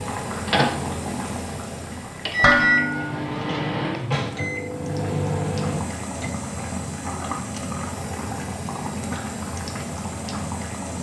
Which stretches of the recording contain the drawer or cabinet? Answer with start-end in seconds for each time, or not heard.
3.0-4.5.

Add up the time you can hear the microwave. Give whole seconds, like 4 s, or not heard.
6 s.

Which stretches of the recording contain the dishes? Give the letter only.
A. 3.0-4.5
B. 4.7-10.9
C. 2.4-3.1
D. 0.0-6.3
C.